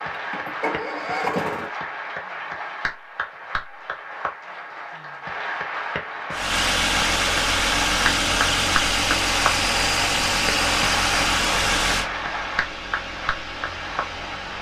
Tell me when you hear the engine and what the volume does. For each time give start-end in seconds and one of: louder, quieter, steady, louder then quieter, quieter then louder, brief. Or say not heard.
0.0-1.7 brief
6.3-14.5 quieter.